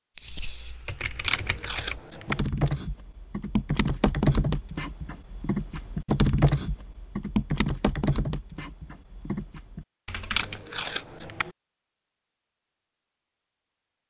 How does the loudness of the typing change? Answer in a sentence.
The volume of the typing goes up, then down.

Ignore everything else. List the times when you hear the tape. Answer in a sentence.
The tape can be heard from 1.2 to 2.5 s and from 10.3 to 11.5 s.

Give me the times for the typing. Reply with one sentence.
You can hear the typing from 0.1 to 10.6 s.